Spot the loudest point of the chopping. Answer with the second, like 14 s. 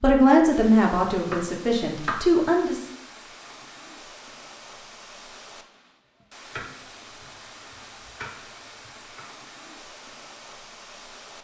2 s.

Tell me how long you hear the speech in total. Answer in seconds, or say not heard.
3 s.